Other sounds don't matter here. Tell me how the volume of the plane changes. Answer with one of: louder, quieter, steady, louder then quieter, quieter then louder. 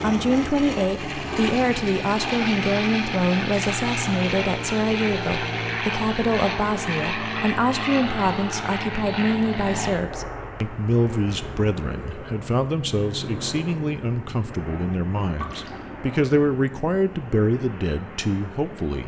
quieter.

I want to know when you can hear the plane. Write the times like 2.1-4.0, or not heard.
0.0-19.0.